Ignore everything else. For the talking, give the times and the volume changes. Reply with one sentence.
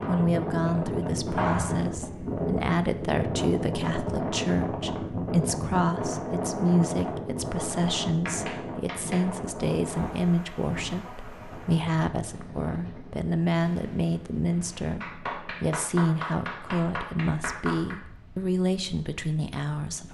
You can hear the talking from 0.1 to 20.0 s, at a steady volume.